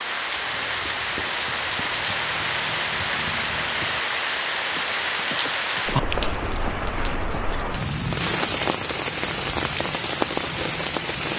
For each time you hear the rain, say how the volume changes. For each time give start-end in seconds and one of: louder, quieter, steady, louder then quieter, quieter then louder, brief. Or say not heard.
0.0-11.3 steady.